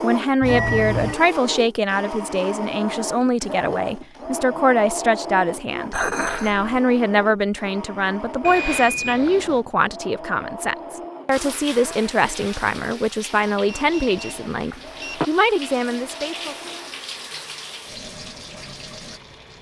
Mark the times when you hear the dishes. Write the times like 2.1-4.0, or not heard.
5.9-6.7.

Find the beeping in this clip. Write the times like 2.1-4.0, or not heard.
0.4-1.1, 8.4-9.6, 13.7-15.2.